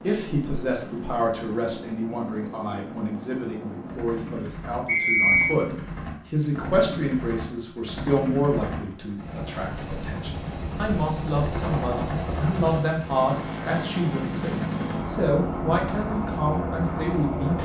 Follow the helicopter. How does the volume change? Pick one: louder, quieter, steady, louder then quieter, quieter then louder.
louder.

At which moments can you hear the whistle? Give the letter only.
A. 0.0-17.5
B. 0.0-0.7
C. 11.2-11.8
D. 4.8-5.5
D.